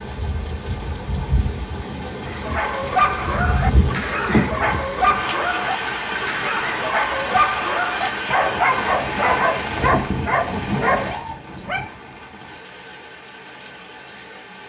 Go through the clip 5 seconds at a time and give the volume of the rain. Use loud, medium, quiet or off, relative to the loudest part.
loud, loud, medium.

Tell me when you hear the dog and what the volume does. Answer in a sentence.
The dog can be heard from 2.2 to 11.9 s, at a steady volume.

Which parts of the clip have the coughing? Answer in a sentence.
You can hear the coughing from 4.2 to 5.2 s.